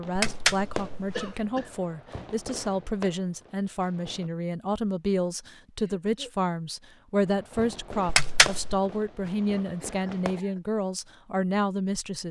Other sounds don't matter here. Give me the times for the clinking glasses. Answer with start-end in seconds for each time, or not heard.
0.1-1.2, 8.1-8.8.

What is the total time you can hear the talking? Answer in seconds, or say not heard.
12 s.